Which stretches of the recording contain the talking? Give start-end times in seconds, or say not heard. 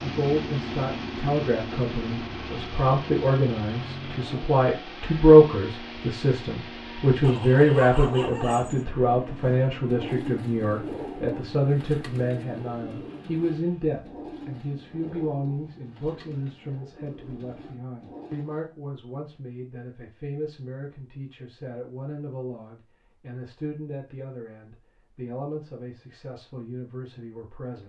0.0-27.8.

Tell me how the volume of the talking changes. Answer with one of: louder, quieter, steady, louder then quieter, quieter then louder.
quieter.